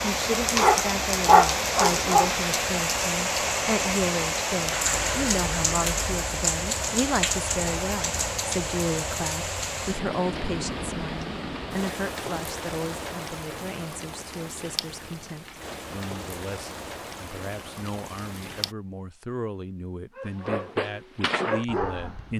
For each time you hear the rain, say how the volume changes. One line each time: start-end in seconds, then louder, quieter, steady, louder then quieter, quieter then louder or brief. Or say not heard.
0.0-18.8 quieter.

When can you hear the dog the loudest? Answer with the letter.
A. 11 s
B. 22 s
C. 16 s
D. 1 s
D.